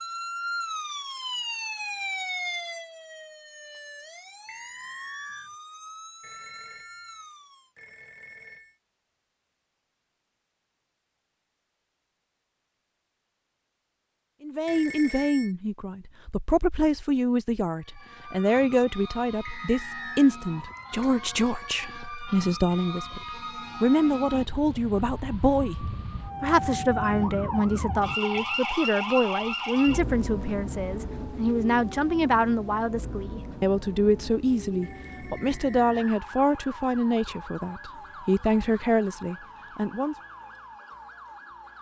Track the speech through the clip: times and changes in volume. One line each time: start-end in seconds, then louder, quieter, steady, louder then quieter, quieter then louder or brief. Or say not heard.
14.4-40.1 steady.